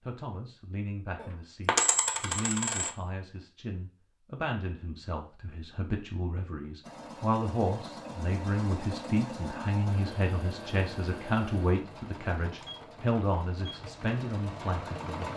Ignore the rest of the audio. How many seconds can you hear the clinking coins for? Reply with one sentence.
You can hear the clinking coins for 2 seconds altogether.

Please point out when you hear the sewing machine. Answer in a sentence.
You can hear the sewing machine from 6.8 to 15.3 s.